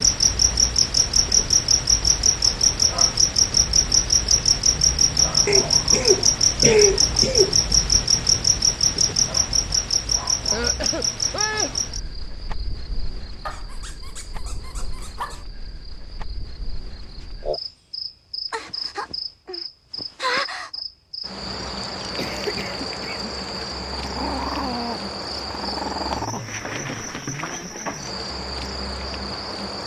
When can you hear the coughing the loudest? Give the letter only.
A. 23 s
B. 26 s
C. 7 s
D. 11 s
C.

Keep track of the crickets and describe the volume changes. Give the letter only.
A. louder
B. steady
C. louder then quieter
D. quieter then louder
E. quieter
D.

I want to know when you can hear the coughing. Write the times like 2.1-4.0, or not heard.
5.5-7.5, 10.5-11.8, 22.1-23.6.